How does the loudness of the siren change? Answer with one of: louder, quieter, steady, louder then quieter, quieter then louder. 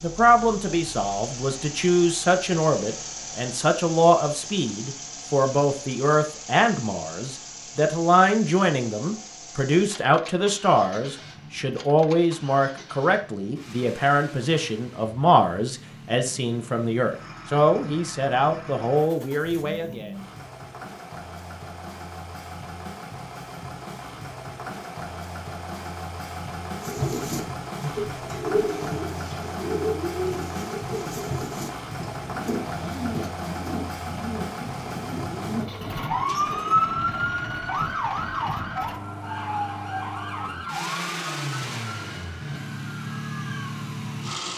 quieter.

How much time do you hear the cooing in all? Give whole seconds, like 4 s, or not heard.
10 s.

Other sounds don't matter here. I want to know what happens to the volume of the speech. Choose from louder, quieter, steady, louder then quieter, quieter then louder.
steady.